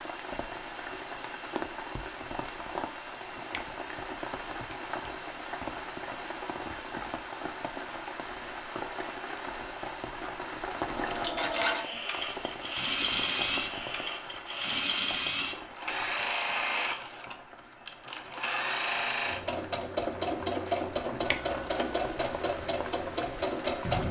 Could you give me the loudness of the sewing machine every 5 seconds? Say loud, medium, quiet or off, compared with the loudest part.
off, off, loud, loud, loud.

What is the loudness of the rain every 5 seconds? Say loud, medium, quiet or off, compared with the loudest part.
loud, loud, loud, medium, loud.